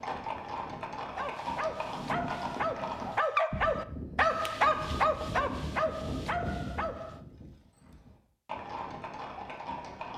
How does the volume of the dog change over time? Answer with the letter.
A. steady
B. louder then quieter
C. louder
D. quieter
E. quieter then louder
B.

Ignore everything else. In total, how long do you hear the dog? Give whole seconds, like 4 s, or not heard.
6 s.